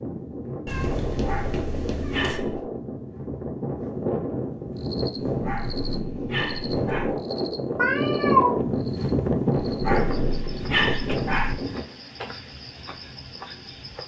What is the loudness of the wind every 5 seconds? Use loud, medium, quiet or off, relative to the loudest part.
medium, loud, loud.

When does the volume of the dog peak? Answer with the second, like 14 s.
11 s.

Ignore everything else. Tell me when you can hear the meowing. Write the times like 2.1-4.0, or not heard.
0.7-2.4, 7.8-8.6.